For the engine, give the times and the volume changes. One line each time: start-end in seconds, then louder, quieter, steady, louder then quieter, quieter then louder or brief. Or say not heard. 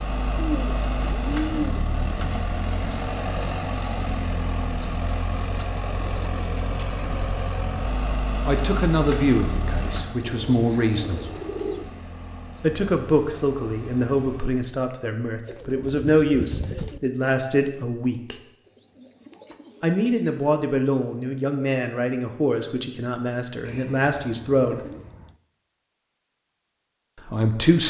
0.0-14.6 quieter.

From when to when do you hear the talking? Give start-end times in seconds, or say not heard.
8.4-11.3, 12.6-18.4, 19.8-24.8, 27.1-27.8.